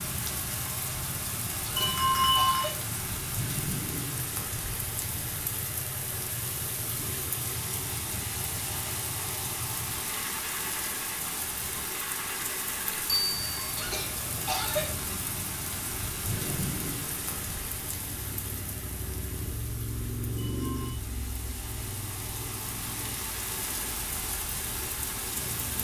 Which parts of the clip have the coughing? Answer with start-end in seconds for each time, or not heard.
1.6-2.9, 13.8-14.9.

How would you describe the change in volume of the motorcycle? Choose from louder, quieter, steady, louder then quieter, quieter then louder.
steady.